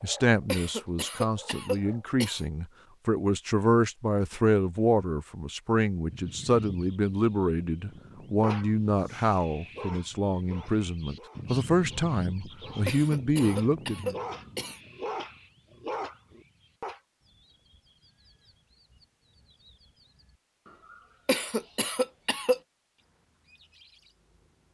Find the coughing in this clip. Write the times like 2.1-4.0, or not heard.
0.5-2.5, 12.8-14.8, 21.2-22.6.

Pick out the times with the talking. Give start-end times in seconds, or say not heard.
0.0-14.2.